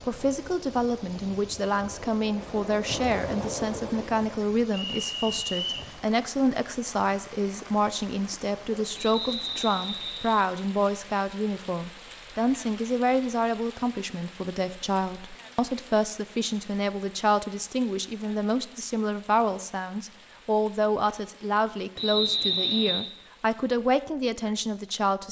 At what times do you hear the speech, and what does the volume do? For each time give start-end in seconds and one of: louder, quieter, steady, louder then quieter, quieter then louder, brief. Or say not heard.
0.0-25.2 steady.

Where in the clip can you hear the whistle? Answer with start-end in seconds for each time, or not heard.
4.7-5.8, 8.9-10.4, 21.9-23.1.